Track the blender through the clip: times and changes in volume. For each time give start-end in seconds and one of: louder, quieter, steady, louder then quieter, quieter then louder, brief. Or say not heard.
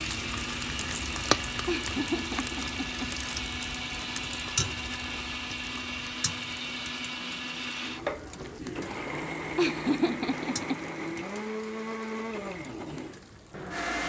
0.0-14.0 steady.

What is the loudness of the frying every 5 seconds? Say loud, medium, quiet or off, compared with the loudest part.
loud, medium, quiet.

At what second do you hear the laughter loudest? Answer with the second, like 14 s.
10 s.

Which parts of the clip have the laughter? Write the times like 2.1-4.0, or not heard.
1.6-3.1, 9.6-10.8.